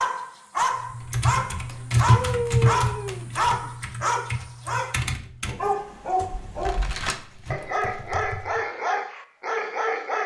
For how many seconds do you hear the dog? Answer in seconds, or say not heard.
10 s.